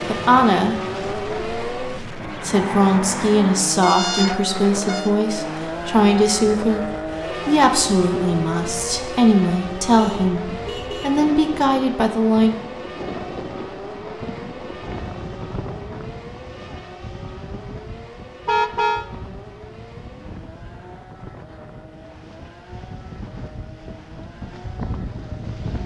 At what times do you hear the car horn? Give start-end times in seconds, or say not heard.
3.8-5.1, 9.9-11.2, 18.4-19.1.